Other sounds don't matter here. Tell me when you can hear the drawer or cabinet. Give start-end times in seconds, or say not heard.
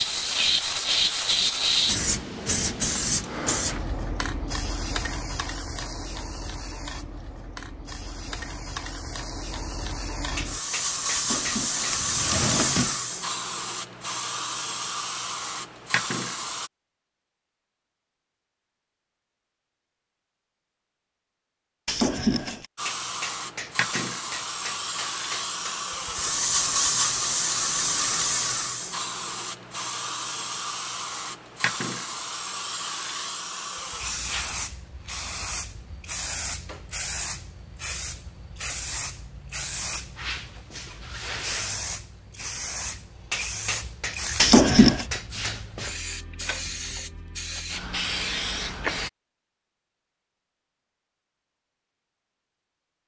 11.2-12.9, 21.9-22.6, 44.4-45.0.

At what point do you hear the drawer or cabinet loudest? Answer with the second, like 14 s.
45 s.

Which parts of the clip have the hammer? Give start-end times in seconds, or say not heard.
10.3-12.0, 22.9-25.8, 43.3-45.6.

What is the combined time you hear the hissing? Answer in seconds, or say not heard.
43 s.